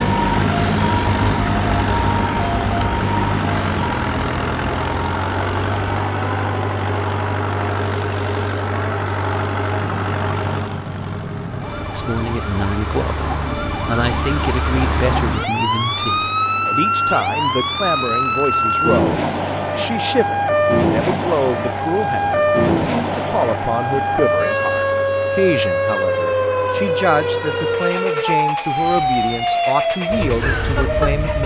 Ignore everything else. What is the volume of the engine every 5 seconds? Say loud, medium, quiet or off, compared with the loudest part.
loud, loud, medium, medium, medium, medium, medium.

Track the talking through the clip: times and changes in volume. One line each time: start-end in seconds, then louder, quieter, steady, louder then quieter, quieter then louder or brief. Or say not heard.
11.9-31.4 steady.